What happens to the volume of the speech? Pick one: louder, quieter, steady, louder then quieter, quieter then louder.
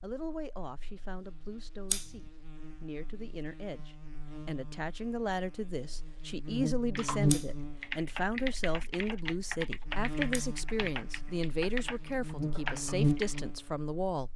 louder.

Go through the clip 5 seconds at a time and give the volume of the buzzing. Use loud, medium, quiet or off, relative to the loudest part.
quiet, loud, loud.